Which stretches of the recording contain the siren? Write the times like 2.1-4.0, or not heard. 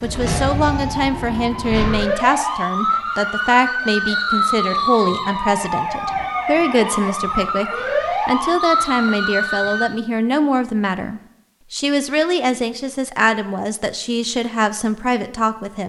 0.0-9.8.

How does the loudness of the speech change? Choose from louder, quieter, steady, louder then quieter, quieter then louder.
steady.